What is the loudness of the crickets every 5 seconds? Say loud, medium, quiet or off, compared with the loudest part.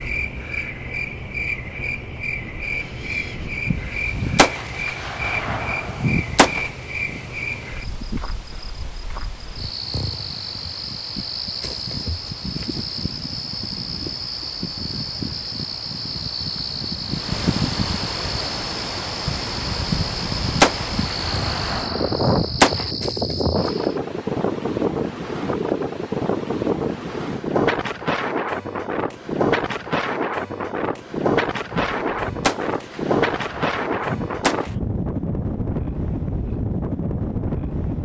loud, loud, loud, loud, loud, off, off, off.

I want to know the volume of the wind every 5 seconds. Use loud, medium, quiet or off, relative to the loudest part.
quiet, quiet, quiet, medium, loud, loud, loud, loud.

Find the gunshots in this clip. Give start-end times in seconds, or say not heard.
3.6-6.7, 19.9-22.9, 31.7-34.7.